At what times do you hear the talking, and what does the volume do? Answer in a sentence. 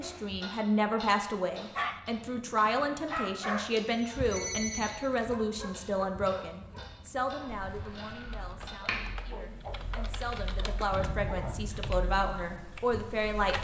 The talking can be heard from 0.0 to 13.6 s, getting quieter then louder.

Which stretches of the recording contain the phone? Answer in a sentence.
The phone can be heard from 3.6 to 5.0 s.